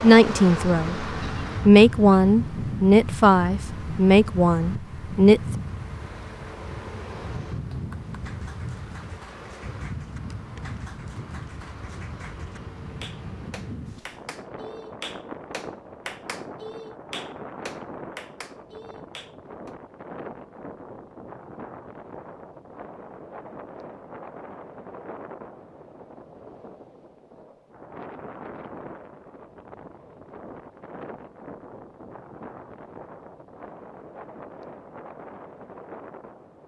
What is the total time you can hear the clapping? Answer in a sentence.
You can hear the clapping for 12 seconds altogether.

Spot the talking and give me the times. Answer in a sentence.
The talking can be heard from 0.0 to 1.1 s and from 1.6 to 5.4 s.